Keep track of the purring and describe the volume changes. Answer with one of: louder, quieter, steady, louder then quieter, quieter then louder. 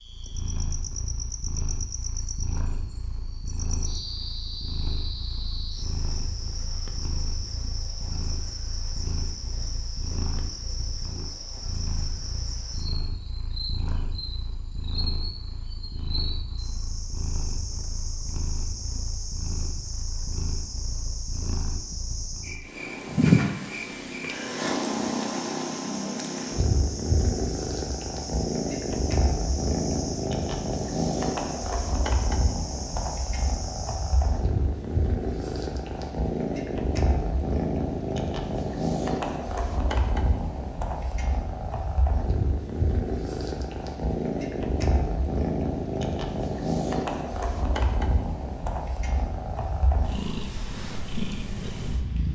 louder.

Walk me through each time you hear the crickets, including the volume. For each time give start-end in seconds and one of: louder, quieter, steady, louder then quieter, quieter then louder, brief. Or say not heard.
0.0-34.5 steady.